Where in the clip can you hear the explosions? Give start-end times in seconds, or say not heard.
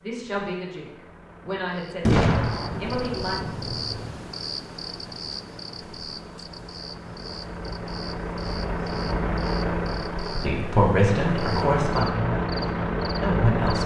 2.0-4.2.